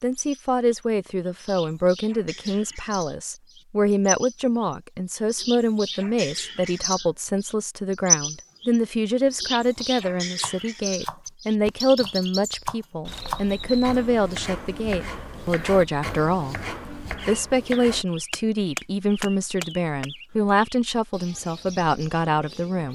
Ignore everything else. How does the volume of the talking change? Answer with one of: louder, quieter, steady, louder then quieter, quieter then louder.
steady.